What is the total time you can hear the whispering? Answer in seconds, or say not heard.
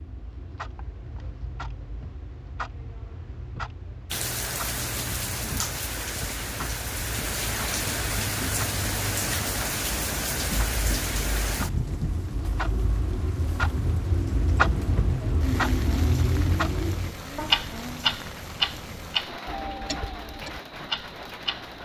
not heard.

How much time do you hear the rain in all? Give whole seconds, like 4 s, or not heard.
18 s.